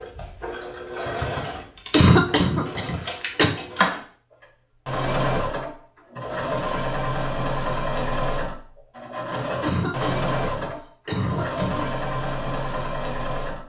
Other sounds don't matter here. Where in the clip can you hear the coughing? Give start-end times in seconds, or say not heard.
1.9-3.5, 9.6-11.9.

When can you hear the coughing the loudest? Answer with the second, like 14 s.
2 s.